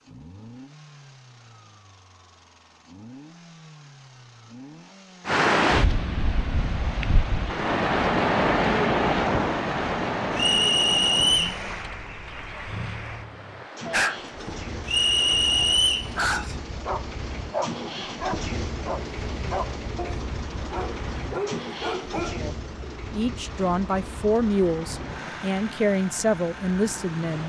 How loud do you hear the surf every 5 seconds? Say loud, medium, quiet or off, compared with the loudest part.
off, loud, medium, quiet, quiet, quiet.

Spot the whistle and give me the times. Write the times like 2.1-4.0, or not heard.
10.3-11.6, 14.8-16.1.